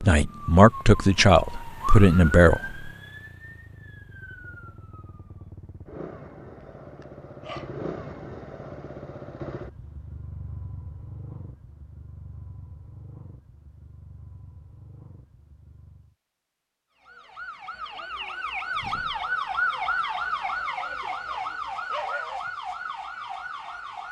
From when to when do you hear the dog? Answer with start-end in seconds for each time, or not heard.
6.6-7.8, 21.2-22.4.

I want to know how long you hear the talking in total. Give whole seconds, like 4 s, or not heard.
3 s.